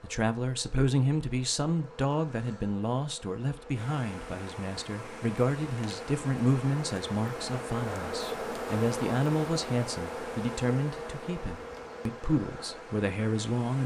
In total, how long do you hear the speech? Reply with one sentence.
The speech can be heard for 14 seconds in total.